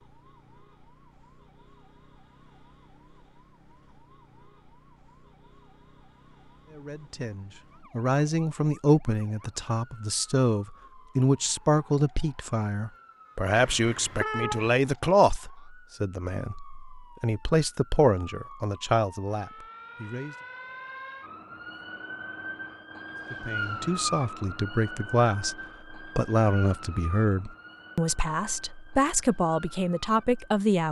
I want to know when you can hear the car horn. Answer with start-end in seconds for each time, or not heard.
13.5-14.7.